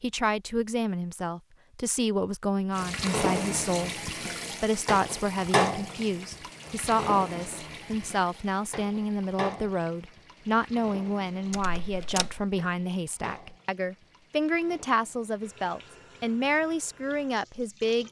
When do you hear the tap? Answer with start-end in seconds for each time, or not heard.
2.8-18.0.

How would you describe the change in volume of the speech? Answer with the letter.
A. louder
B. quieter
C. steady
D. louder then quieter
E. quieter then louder
C.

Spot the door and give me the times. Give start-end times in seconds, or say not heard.
11.5-12.4.